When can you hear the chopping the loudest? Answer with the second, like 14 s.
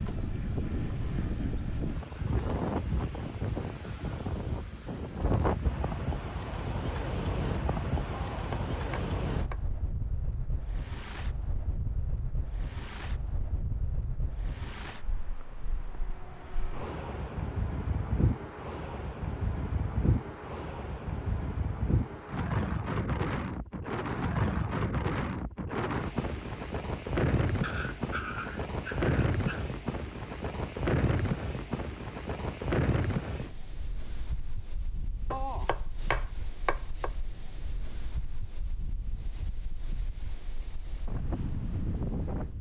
36 s.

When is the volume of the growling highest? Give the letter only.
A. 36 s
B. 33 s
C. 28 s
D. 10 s
C.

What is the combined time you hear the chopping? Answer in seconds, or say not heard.
3 s.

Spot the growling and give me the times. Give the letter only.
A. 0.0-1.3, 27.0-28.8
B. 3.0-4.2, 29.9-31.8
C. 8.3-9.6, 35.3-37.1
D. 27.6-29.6
D.